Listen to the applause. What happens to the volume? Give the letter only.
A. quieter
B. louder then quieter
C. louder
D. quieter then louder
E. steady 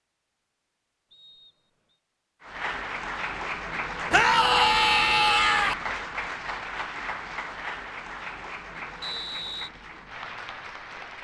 A.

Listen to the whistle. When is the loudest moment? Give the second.
9 s.